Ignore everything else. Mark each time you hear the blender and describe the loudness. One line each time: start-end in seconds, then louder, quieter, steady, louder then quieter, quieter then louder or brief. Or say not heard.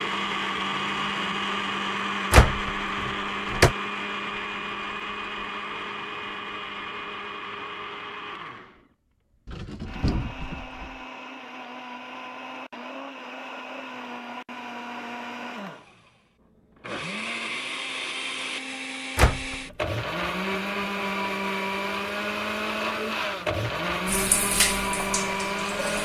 0.0-26.0 quieter then louder.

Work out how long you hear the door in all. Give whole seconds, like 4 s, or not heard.
3 s.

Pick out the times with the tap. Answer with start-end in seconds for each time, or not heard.
24.1-26.0.